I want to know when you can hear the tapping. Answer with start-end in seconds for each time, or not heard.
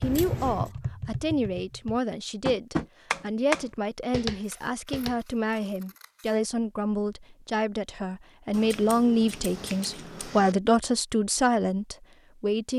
0.0-5.2.